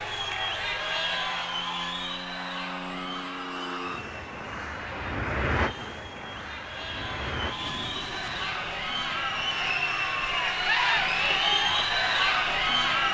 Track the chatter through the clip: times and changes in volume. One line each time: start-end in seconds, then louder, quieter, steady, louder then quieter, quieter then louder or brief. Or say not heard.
0.0-13.0 quieter then louder.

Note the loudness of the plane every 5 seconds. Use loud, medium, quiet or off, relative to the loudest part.
loud, loud, quiet.